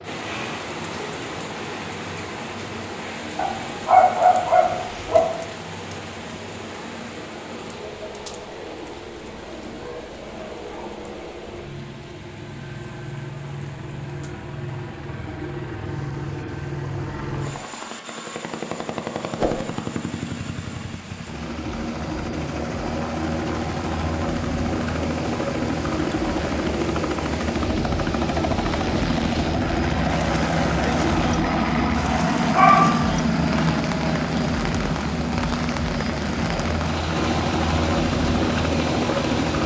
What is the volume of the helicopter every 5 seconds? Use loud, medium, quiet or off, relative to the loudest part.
quiet, quiet, quiet, medium, medium, loud, loud, loud.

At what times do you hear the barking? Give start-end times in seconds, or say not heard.
3.4-5.2, 32.5-33.0.